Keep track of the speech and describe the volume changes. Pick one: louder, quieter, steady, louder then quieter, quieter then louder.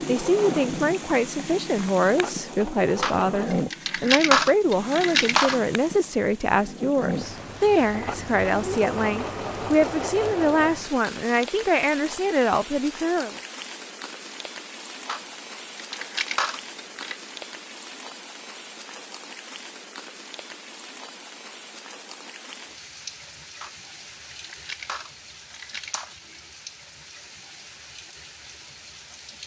steady.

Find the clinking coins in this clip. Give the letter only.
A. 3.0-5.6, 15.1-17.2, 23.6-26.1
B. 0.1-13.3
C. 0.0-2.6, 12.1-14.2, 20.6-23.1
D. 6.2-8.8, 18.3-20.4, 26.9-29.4
A.